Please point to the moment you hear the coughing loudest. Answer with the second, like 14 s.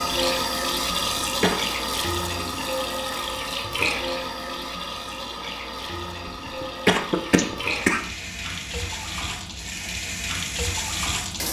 7 s.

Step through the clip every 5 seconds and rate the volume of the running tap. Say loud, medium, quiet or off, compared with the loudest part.
loud, medium, loud.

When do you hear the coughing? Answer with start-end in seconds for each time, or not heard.
0.8-1.7, 6.2-8.0.